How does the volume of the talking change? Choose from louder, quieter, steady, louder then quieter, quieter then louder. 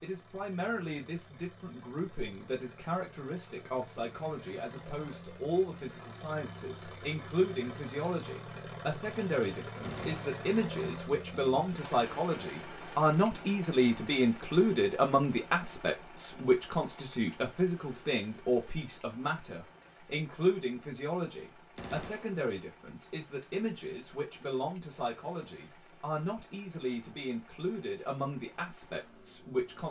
louder then quieter.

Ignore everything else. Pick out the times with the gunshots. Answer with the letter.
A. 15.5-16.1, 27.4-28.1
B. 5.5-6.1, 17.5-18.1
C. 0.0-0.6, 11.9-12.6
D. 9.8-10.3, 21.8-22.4
D.